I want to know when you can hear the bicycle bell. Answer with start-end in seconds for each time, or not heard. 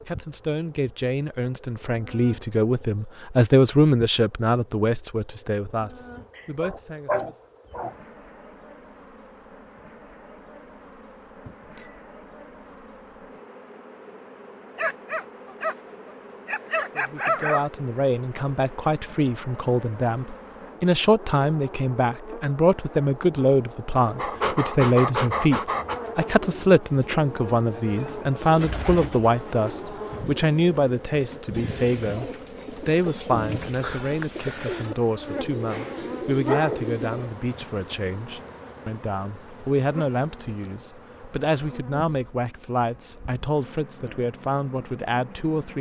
11.4-12.1.